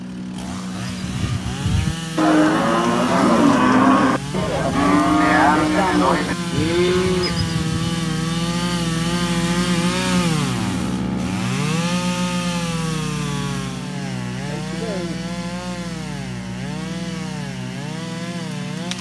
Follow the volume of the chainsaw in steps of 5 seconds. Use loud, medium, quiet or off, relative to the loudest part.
medium, loud, loud, medium.